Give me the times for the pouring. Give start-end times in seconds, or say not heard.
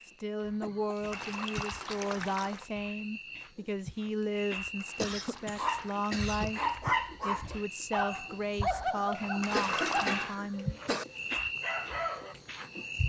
1.1-2.7, 4.8-6.8, 9.4-10.2.